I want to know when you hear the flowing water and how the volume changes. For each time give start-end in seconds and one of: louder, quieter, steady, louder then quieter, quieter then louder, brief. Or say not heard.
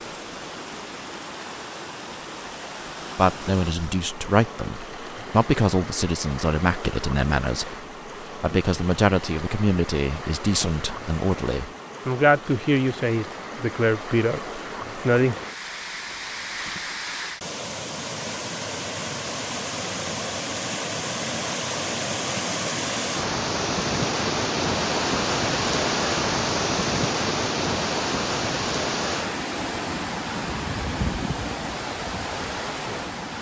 0.0-33.3 louder.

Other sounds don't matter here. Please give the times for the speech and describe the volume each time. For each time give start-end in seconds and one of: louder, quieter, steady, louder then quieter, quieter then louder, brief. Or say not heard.
3.1-15.3 steady.